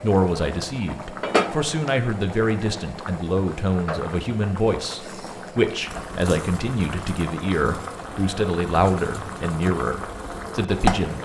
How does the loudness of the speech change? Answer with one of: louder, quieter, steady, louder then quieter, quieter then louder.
steady.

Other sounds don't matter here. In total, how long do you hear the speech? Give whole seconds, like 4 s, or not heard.
11 s.